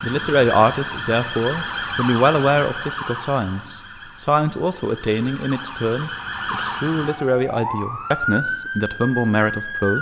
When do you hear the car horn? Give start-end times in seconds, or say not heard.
not heard.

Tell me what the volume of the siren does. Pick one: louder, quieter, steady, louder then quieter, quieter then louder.
quieter then louder.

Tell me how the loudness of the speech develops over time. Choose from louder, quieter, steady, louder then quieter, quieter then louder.
steady.